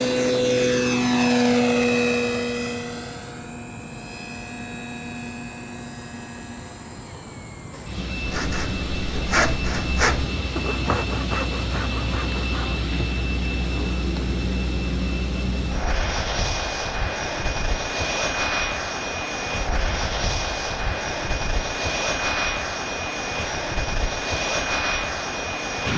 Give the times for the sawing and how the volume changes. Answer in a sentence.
The sawing can be heard from 7.7 to 12.8 s, getting louder then quieter.